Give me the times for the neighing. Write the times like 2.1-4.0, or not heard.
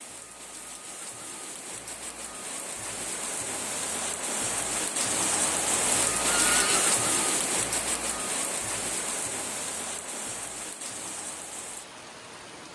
6.2-6.9.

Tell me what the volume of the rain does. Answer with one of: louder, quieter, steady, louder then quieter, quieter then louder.
louder then quieter.